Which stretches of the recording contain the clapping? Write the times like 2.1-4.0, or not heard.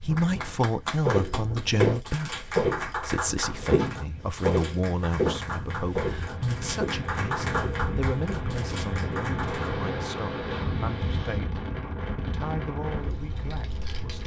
0.1-9.8.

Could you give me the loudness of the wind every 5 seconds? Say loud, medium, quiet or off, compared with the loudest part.
medium, loud, loud.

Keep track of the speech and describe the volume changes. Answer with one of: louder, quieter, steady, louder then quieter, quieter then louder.
quieter.